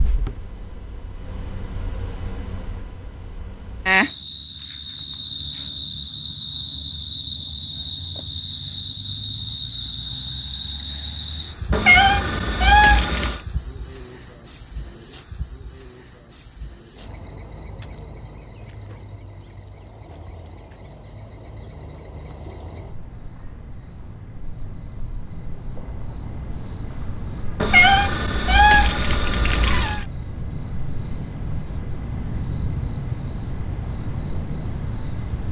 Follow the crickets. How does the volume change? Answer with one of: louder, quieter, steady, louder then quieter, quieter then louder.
quieter then louder.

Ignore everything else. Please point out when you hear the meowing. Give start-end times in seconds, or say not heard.
11.7-13.4, 27.6-30.1.